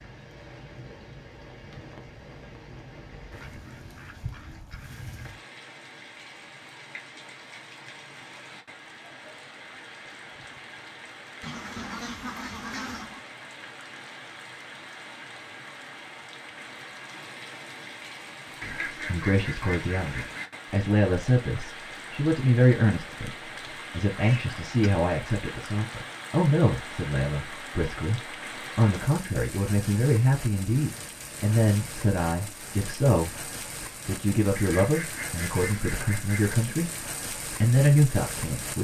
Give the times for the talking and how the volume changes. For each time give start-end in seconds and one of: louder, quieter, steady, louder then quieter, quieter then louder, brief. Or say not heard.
18.6-38.7 steady.